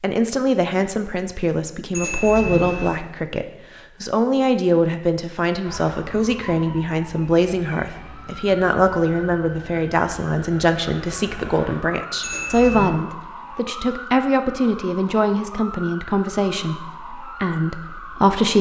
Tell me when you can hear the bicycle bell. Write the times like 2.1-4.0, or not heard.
1.9-3.0, 12.2-12.9.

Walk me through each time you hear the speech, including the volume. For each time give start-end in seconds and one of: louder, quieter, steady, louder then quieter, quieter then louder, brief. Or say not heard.
0.0-18.5 steady.